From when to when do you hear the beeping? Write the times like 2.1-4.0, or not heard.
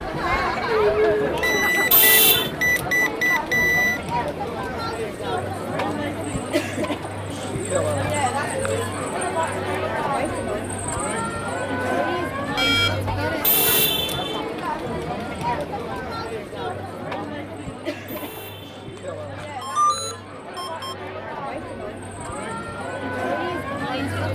1.4-4.0, 12.6-13.2, 18.9-20.9.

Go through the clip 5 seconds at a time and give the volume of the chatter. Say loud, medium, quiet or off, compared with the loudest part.
loud, loud, loud, medium, medium.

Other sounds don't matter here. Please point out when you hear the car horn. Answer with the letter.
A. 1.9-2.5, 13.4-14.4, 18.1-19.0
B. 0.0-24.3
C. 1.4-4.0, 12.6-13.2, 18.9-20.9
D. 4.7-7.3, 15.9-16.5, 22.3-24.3
A.